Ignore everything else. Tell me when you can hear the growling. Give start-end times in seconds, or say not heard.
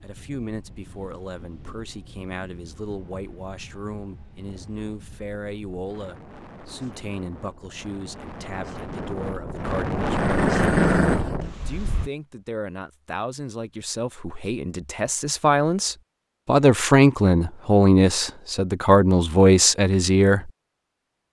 10.2-11.3.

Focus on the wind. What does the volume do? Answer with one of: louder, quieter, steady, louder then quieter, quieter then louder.
louder.